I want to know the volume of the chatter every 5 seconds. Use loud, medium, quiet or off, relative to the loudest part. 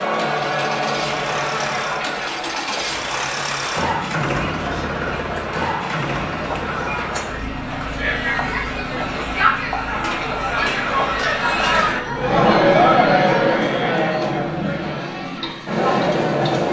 medium, medium, loud, loud.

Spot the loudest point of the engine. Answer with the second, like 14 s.
4 s.